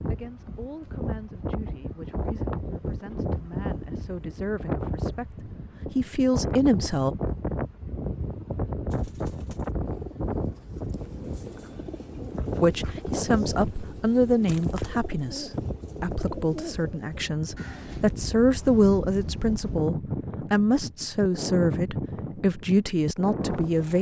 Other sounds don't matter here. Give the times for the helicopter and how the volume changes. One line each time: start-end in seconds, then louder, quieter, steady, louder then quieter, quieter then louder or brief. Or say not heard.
not heard.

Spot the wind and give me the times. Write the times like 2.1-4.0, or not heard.
0.0-23.9.